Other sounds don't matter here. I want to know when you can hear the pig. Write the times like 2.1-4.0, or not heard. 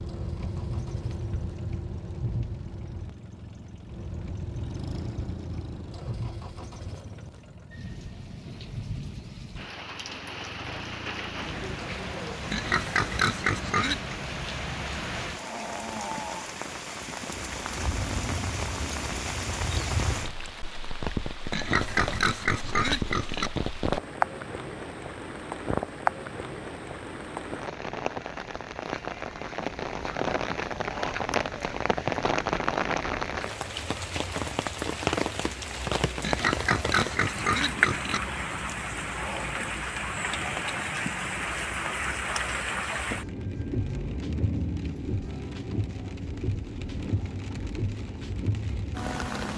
12.5-14.2, 21.5-23.5, 36.2-38.2.